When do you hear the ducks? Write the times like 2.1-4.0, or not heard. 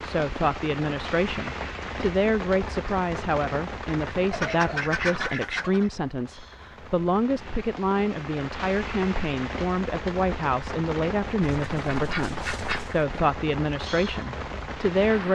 4.3-5.9, 11.7-13.1.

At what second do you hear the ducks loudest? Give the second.
5 s.